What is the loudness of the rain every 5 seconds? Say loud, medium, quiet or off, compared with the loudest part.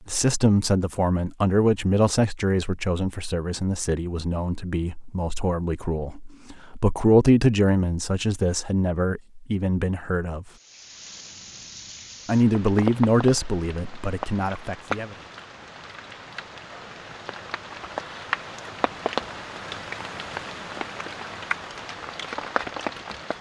off, off, loud, loud, loud.